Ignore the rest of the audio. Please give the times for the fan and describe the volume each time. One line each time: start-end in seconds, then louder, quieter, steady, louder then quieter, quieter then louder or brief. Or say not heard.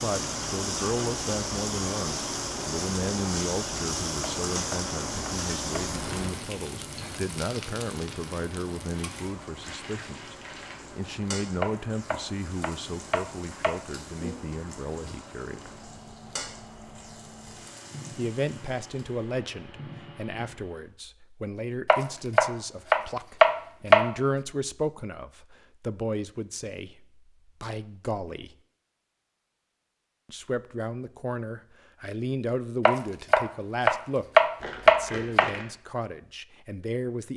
0.0-20.9 quieter.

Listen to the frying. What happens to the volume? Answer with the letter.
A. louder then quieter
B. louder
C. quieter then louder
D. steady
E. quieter
E.